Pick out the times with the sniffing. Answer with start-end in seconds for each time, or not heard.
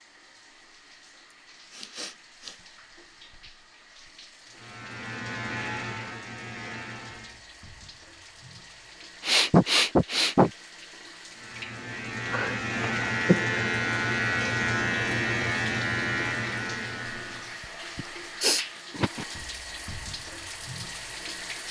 1.7-2.5, 9.2-10.5, 17.9-19.2.